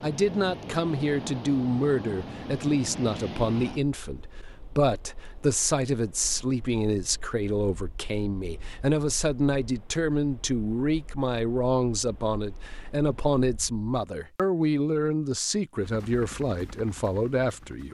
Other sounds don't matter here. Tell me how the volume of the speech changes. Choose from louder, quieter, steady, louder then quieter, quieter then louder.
steady.